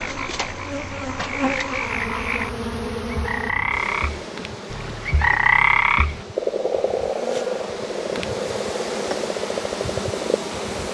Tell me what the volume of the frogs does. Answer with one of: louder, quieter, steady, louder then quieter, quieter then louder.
louder then quieter.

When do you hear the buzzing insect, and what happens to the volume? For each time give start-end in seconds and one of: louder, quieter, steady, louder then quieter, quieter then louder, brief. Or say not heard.
0.0-10.9 quieter then louder.